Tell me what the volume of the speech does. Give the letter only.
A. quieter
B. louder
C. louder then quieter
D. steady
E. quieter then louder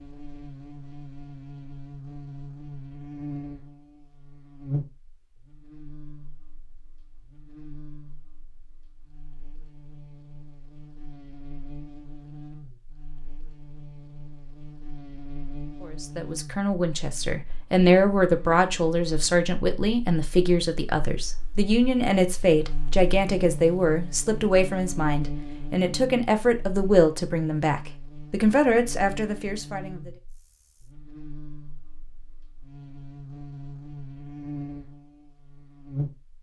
D.